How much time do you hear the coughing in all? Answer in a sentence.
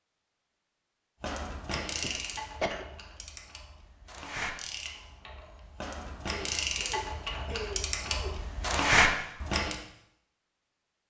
You can hear the coughing for 3 seconds altogether.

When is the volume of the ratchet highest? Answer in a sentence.
The volume of the ratchet peaks at 9 seconds.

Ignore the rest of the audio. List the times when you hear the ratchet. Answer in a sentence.
The ratchet can be heard from 1.2 to 9.8 s.